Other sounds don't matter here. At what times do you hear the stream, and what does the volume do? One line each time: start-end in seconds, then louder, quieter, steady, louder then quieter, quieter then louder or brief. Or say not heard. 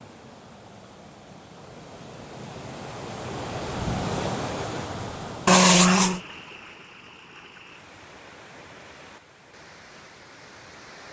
0.0-11.0 louder then quieter.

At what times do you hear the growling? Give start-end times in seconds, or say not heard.
5.5-6.2.